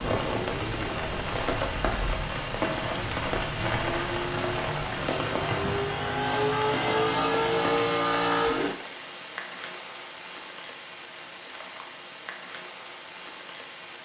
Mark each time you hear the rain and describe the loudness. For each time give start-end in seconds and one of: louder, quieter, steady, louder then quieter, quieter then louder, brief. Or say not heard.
0.0-14.0 quieter.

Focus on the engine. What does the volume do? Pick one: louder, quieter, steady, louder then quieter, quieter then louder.
louder.